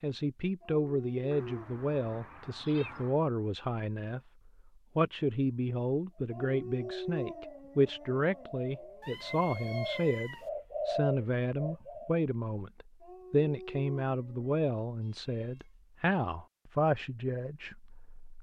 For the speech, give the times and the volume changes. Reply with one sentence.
The speech can be heard from 0.0 to 18.3 s, at a steady volume.